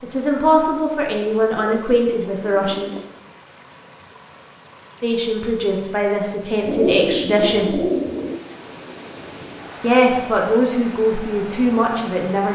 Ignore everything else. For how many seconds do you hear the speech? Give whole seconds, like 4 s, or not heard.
8 s.